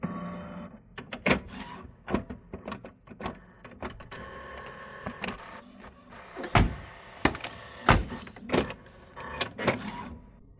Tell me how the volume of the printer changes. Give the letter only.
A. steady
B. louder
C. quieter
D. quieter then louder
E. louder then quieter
D.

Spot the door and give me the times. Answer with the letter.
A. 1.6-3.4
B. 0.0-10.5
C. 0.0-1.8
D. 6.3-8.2
D.